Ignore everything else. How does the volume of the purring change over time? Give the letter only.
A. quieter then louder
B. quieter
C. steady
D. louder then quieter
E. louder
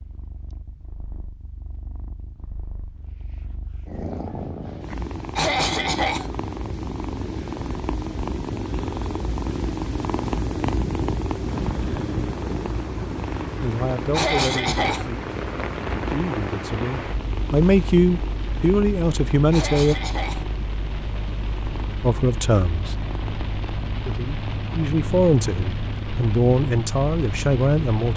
D.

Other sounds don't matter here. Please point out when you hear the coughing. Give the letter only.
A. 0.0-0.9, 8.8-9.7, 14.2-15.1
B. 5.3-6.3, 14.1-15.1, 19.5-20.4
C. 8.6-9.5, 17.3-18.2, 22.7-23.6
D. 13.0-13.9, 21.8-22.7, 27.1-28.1
B.